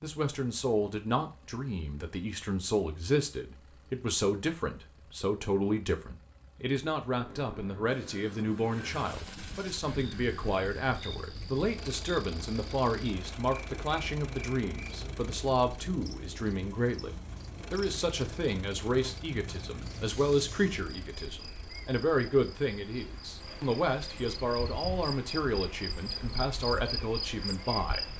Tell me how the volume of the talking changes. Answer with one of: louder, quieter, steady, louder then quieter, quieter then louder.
steady.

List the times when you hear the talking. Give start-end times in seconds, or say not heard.
0.0-28.1.